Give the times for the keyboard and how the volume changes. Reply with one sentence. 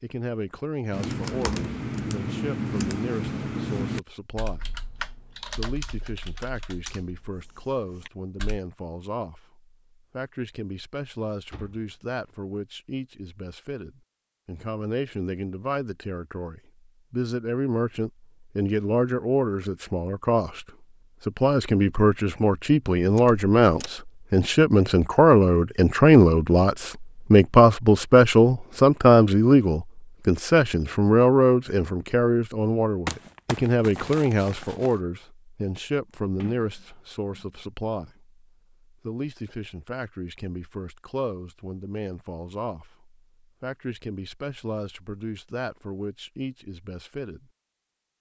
You can hear the keyboard from 0.9 to 8.6 s, getting quieter.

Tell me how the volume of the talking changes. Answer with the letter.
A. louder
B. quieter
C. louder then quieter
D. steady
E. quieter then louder
C.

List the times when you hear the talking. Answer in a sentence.
You can hear the talking from 0.0 to 20.6 s and from 21.2 to 47.5 s.